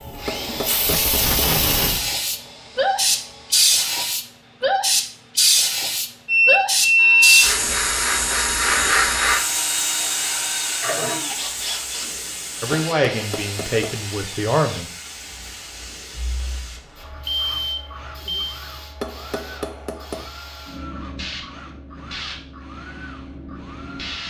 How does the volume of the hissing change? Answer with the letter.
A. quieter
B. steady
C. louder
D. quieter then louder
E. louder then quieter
A.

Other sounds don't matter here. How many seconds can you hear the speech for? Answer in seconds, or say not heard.
2 s.